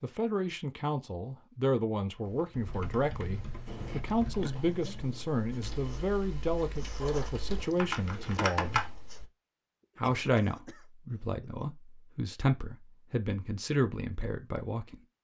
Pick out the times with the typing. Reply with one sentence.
The typing can be heard from 2.2 to 8.9 s.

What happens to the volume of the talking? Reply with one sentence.
The volume of the talking stays about the same.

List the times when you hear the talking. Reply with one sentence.
You can hear the talking from 0.0 to 8.8 s and from 9.9 to 15.0 s.